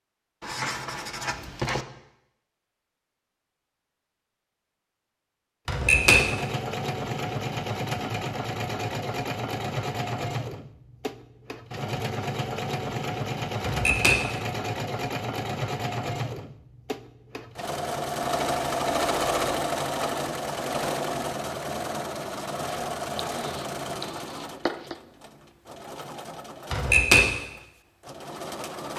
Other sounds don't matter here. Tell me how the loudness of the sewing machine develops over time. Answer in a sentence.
The loudness of the sewing machine goes down.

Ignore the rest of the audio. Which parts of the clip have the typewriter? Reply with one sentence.
The typewriter can be heard from 5.7 to 6.2 s, from 13.6 to 14.2 s and from 26.7 to 27.2 s.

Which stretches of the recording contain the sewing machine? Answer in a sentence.
You can hear the sewing machine from 5.8 to 28.9 s.